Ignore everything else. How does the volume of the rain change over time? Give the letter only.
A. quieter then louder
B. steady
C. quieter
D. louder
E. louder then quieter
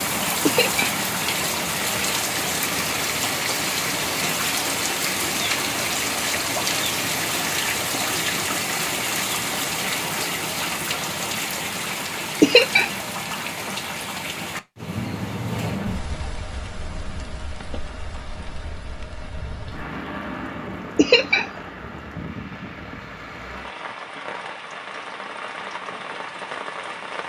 C.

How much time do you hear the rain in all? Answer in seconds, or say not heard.
27 s.